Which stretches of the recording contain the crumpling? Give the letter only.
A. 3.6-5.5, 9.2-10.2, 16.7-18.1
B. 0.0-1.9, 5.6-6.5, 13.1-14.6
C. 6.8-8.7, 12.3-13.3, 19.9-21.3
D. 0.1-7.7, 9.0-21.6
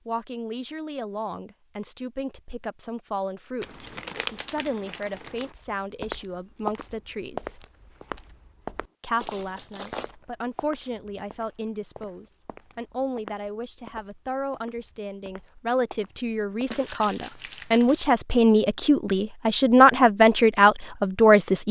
A.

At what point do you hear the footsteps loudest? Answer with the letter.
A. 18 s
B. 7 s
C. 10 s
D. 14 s
B.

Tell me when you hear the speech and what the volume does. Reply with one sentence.
The speech can be heard from 0.1 to 7.7 s, at a steady volume; and from 9.0 to 21.6 s, getting louder.